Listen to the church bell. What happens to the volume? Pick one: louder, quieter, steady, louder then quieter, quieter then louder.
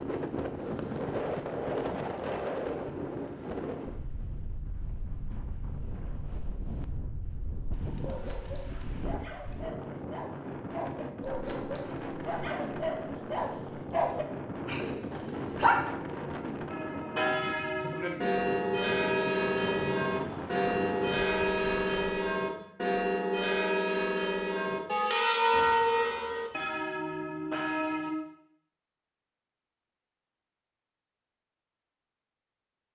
steady.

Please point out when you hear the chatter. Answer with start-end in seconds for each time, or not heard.
not heard.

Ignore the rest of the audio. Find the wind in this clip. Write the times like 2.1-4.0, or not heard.
0.0-22.4.